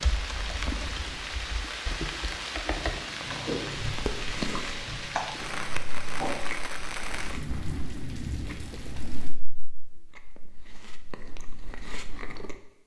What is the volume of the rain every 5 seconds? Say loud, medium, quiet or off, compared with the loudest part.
loud, loud, off.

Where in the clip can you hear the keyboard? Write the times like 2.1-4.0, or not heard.
0.0-6.5.